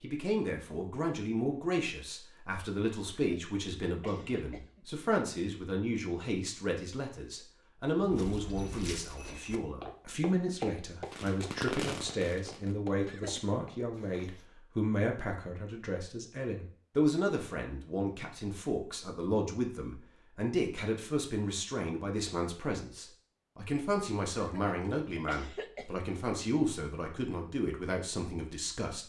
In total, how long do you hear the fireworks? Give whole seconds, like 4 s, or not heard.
2 s.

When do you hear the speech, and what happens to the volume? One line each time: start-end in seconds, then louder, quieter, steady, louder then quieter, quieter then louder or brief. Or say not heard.
0.0-29.0 steady.